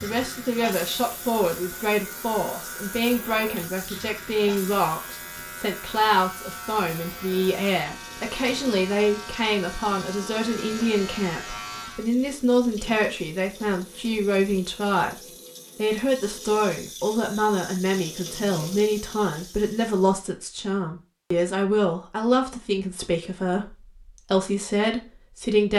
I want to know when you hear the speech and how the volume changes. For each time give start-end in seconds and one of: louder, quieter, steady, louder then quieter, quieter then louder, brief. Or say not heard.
0.0-25.7 steady.